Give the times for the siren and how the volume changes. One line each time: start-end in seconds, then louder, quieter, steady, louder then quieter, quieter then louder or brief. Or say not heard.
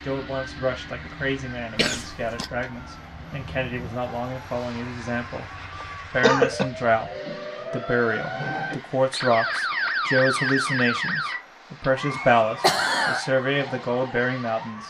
0.0-14.8 louder then quieter.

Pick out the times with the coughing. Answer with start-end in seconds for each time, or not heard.
1.8-2.5, 5.8-6.7, 12.1-13.2.